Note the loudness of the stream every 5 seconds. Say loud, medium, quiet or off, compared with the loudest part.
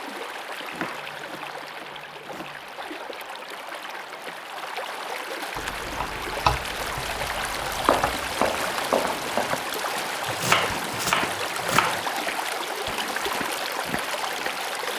medium, loud, loud.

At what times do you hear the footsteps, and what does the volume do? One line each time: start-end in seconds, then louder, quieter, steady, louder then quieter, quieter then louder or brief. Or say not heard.
7.8-14.7 quieter.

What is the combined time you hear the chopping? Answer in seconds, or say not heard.
6 s.